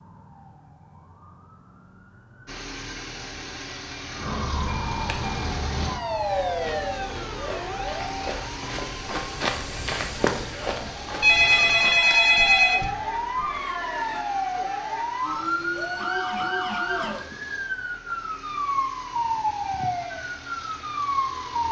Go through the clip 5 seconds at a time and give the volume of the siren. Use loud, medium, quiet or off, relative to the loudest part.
medium, loud, loud, loud, loud.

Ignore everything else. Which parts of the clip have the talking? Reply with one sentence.
The talking can't be heard in this clip.